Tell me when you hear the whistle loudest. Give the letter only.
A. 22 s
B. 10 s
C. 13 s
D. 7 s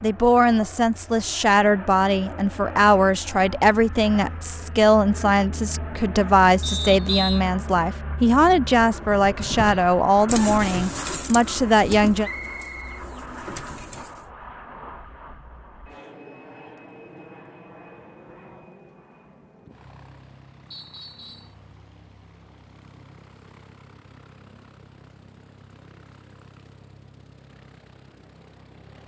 D.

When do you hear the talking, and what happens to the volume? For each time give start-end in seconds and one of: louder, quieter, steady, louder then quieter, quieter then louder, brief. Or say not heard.
0.0-12.3 steady.